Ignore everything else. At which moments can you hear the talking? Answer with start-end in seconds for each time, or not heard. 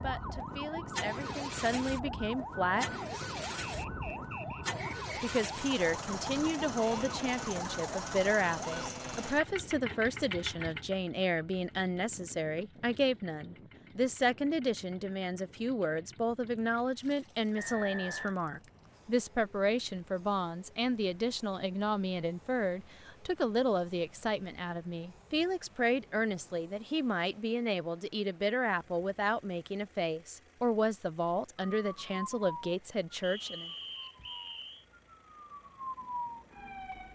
0.0-3.4, 5.2-33.7.